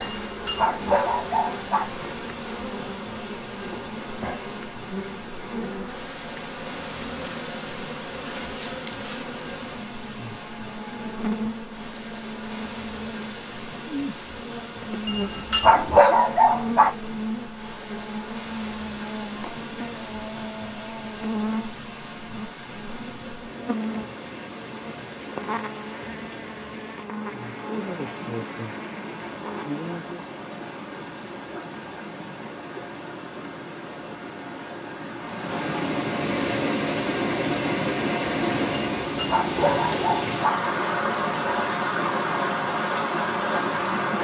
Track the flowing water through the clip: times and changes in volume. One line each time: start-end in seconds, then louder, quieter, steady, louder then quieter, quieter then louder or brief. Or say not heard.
0.0-44.1 louder.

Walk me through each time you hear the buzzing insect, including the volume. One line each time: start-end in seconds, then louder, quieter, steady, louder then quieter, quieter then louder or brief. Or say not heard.
0.0-30.2 steady.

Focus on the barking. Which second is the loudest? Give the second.
16 s.